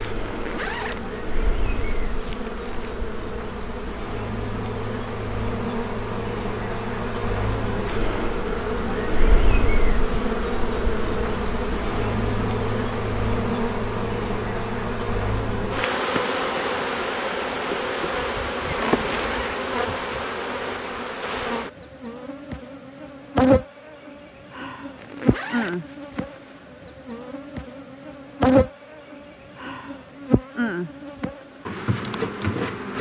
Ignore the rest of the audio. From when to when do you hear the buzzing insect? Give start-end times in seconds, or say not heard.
0.0-32.9.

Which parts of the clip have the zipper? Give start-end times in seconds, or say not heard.
0.2-2.9, 19.1-19.6, 24.9-26.6.